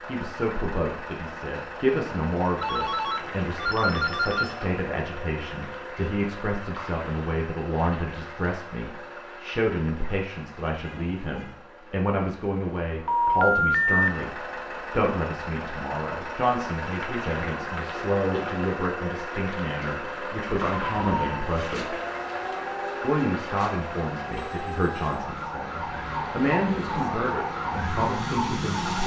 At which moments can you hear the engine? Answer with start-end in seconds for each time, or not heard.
0.0-29.0.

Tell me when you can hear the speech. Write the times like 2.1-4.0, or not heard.
0.1-21.9, 23.0-29.0.